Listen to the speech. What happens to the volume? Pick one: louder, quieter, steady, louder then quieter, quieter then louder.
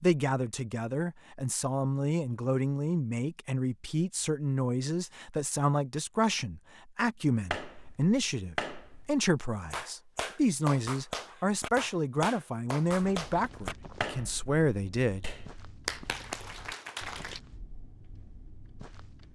steady.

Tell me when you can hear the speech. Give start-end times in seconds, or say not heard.
0.0-15.2.